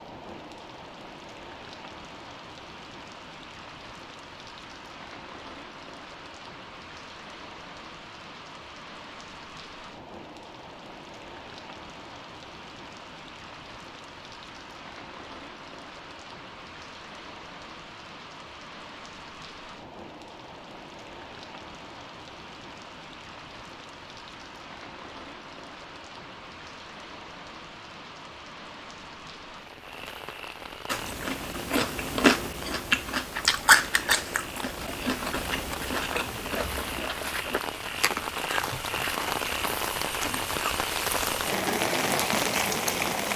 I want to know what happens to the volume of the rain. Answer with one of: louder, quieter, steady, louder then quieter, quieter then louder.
louder.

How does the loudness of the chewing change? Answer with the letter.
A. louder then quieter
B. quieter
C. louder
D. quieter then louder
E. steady
B.